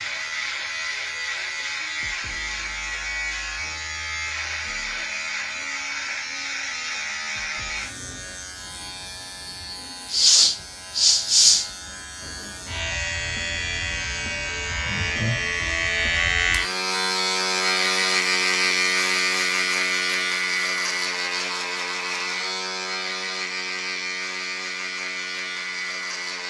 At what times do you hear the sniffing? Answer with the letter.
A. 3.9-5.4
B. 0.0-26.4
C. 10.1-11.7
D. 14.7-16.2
C.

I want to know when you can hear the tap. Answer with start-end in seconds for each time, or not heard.
not heard.